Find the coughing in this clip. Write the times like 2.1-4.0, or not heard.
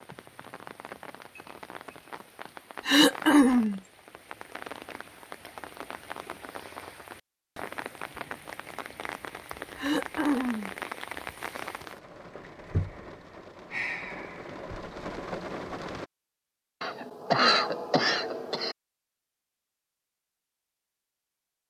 2.9-3.8, 9.8-10.7, 16.8-18.8.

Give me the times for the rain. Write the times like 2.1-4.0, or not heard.
0.0-16.1.